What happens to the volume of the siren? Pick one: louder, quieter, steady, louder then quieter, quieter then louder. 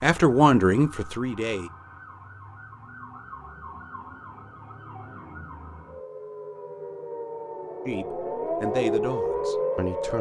louder.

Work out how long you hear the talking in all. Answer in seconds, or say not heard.
4 s.